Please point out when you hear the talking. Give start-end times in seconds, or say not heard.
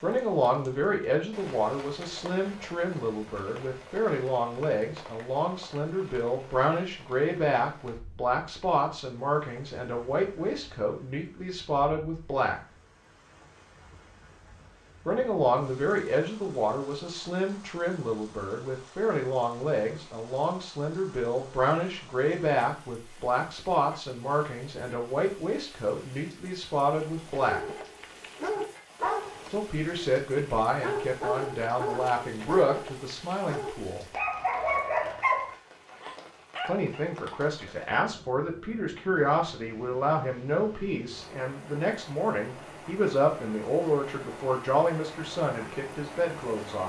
0.0-12.6, 15.1-27.6, 29.5-34.0, 36.6-46.8.